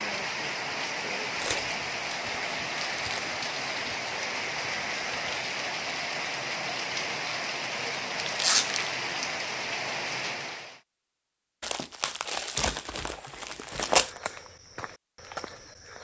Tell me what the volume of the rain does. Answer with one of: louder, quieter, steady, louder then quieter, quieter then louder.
steady.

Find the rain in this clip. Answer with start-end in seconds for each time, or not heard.
0.0-10.8.